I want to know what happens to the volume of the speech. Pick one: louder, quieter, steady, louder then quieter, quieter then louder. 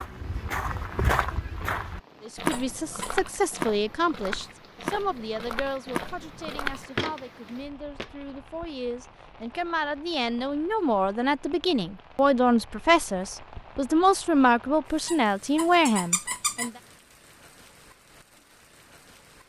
quieter then louder.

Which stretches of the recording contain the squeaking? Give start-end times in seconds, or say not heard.
2.5-3.1, 15.1-16.7.